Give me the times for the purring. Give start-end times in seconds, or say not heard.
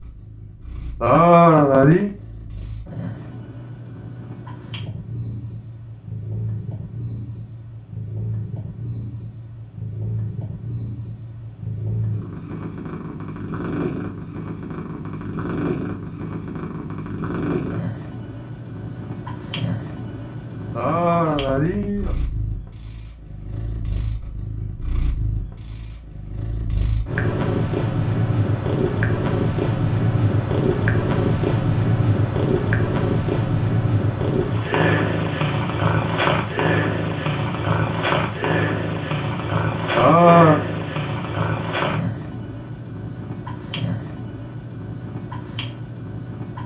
0.0-46.6.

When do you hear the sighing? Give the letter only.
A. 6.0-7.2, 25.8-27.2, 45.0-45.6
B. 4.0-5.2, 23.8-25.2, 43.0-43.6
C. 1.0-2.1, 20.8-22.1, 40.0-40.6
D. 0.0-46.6
C.